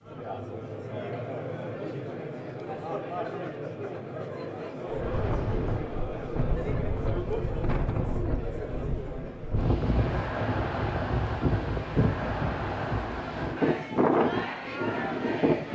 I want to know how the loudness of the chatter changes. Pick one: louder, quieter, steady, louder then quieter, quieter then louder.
steady.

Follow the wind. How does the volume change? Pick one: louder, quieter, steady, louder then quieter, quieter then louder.
louder.